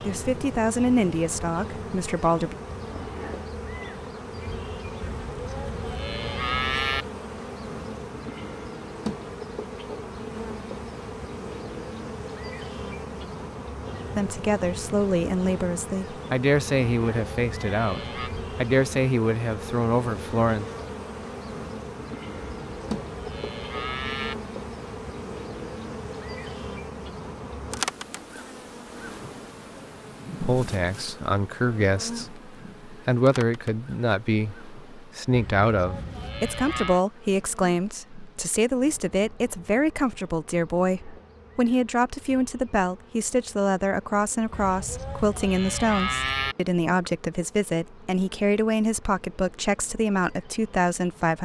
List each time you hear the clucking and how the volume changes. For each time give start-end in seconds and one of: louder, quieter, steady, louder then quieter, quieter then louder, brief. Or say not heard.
not heard.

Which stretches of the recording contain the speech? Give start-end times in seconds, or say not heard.
0.0-2.5, 14.2-20.6, 30.4-51.4.